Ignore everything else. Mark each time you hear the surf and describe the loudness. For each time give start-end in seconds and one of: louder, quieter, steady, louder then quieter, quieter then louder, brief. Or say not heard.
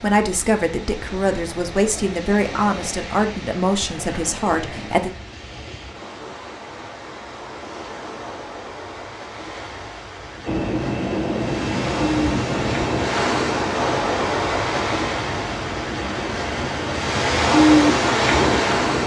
0.0-19.0 louder.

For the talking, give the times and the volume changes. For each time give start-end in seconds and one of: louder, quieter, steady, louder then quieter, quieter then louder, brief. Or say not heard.
0.0-5.1 steady.